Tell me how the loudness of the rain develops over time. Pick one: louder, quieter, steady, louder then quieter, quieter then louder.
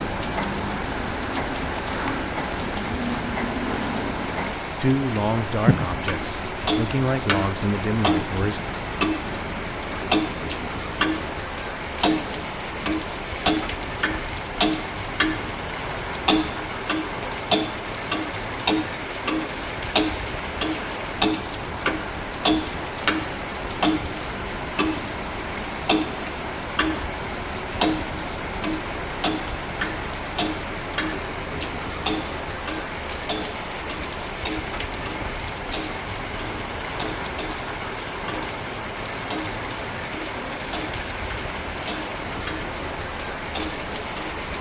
steady.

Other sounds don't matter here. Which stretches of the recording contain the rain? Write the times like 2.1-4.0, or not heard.
0.0-44.5.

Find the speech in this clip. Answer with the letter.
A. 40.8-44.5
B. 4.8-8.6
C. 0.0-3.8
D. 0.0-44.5
B.